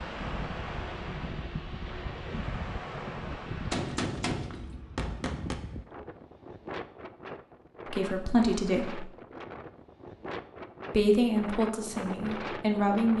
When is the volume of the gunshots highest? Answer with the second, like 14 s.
4 s.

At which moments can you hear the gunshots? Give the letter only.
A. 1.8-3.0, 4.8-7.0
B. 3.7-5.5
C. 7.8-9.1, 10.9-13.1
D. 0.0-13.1
B.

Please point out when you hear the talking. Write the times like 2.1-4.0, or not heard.
7.8-9.1, 10.9-13.1.